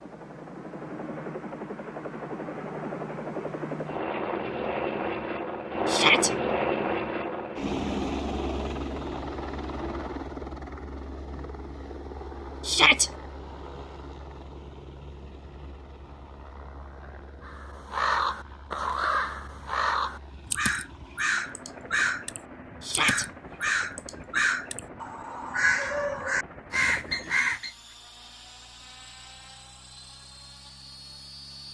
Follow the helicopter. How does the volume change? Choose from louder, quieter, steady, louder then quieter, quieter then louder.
quieter.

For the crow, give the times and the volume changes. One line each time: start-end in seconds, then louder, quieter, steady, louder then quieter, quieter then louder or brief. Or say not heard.
17.4-27.7 steady.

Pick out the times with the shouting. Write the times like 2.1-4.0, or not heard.
5.8-6.3, 12.7-13.1, 22.8-23.2.